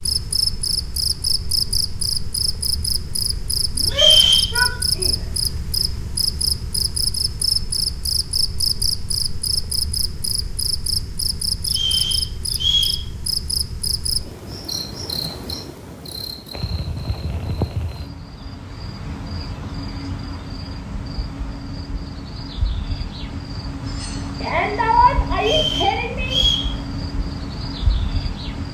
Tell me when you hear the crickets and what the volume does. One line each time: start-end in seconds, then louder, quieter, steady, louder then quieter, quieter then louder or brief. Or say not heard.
0.0-28.6 quieter.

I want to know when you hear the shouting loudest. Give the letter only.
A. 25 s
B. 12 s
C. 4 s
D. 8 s
A.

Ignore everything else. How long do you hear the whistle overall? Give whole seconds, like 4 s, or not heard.
3 s.